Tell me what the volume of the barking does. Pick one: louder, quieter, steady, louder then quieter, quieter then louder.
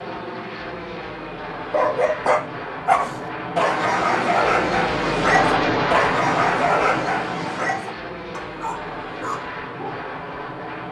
quieter.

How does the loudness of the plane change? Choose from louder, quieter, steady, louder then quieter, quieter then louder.
louder then quieter.